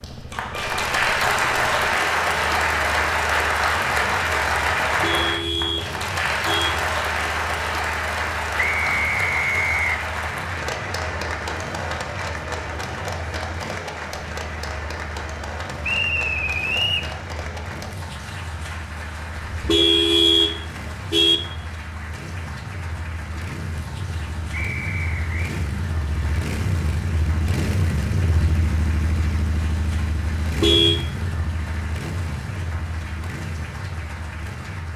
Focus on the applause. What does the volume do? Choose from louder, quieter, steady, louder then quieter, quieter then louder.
quieter.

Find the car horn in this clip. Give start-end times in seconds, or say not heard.
5.0-6.7, 19.4-21.4, 30.4-30.9.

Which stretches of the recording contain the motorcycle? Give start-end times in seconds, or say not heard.
0.0-34.9.